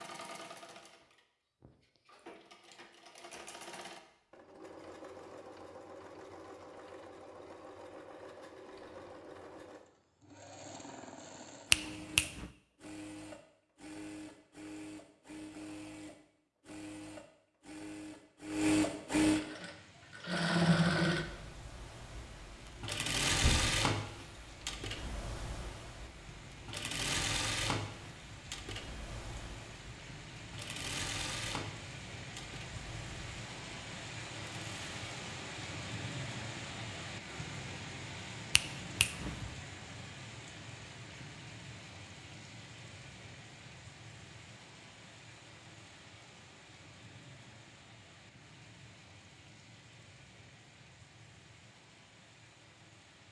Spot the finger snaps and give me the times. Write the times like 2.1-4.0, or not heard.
11.7-12.5, 38.5-39.5.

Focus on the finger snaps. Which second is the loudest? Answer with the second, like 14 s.
12 s.